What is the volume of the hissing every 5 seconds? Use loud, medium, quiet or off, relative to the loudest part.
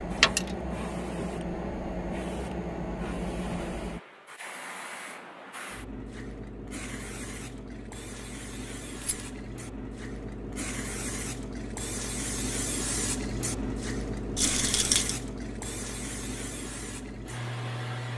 loud, medium, loud, loud.